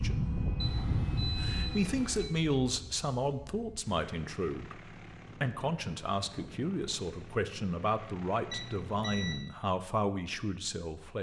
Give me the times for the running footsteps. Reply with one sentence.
The running footsteps can't be heard in this clip.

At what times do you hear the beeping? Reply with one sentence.
You can hear the beeping from 0.6 to 2.4 s and from 8.5 to 9.4 s.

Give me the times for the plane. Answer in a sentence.
You can hear the plane from 0.0 to 9.4 s.